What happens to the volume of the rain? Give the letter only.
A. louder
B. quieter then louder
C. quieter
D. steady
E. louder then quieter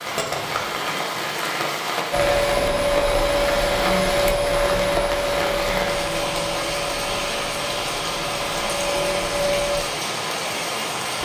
D.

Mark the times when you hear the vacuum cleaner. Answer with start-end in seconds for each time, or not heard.
2.1-9.8.